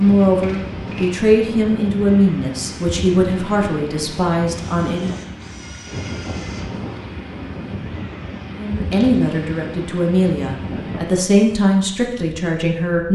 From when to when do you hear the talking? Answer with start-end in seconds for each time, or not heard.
0.0-5.1, 8.6-13.1.